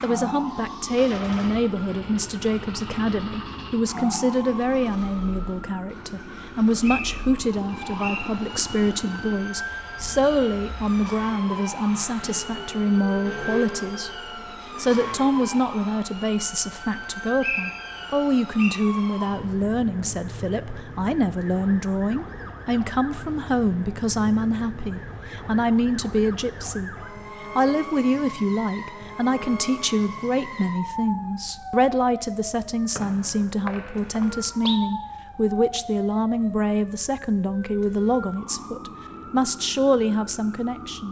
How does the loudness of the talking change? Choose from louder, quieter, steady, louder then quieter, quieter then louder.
steady.